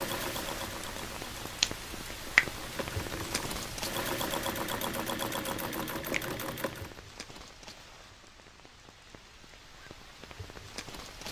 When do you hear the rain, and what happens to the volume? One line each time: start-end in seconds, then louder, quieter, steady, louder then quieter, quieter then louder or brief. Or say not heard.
0.0-11.2 quieter.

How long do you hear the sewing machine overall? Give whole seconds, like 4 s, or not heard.
7 s.